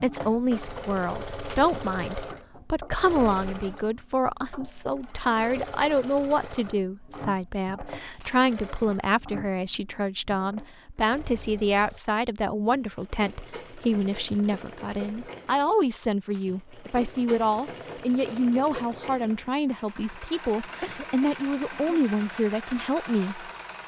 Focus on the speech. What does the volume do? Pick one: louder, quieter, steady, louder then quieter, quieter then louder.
steady.